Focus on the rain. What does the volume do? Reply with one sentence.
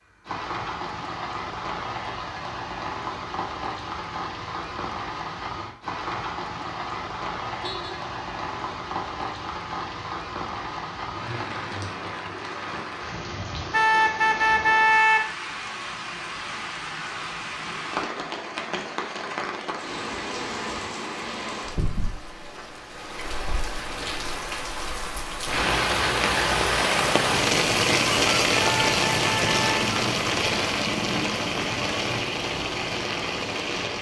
The loudness of the rain goes up.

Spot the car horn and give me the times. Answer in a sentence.
The car horn can be heard from 7.6 to 8.0 s, from 13.7 to 15.2 s and from 28.6 to 29.8 s.